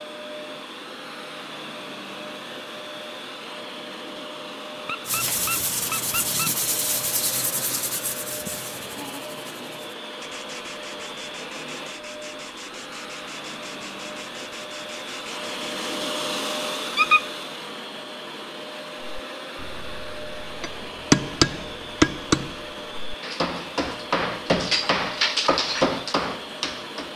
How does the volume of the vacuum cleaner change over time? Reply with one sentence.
The loudness of the vacuum cleaner stays about the same.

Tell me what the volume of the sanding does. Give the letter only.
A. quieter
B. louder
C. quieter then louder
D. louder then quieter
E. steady
A.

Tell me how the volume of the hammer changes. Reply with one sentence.
The volume of the hammer goes down, then up.